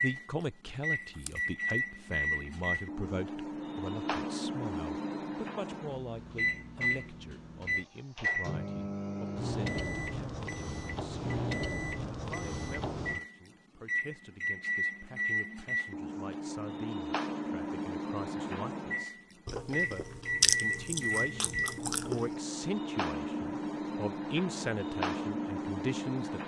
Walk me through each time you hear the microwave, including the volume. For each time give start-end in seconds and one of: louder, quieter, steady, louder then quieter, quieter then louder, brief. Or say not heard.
0.0-26.4 steady.